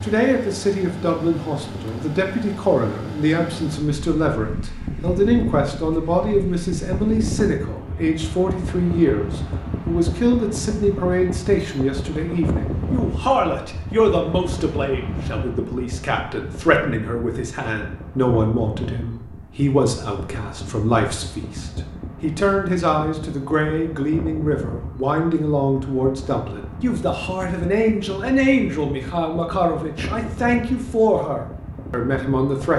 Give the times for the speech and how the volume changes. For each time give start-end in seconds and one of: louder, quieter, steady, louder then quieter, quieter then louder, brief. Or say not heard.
0.0-32.7 steady.